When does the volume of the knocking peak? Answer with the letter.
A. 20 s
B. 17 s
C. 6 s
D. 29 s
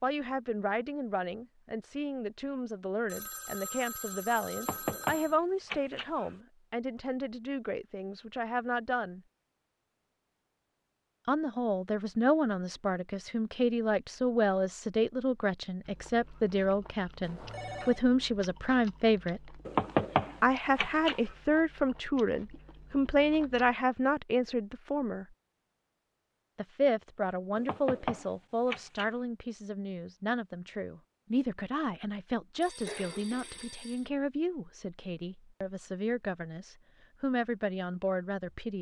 A.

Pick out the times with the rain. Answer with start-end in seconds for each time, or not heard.
not heard.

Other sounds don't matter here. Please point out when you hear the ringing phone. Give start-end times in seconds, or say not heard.
3.0-5.3, 17.2-18.1, 32.6-34.0.